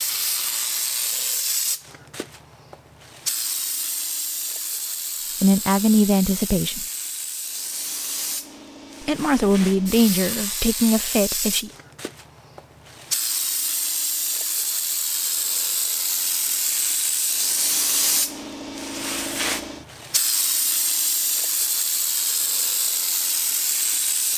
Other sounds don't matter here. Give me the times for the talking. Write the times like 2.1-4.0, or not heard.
5.4-6.8, 9.1-11.7.